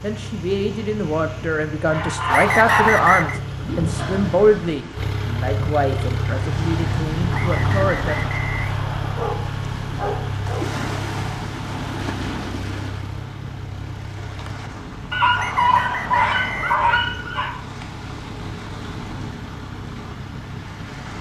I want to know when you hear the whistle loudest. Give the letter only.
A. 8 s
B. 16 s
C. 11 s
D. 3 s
D.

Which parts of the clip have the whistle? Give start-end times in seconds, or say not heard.
2.3-3.4, 7.3-9.3, 15.3-17.0.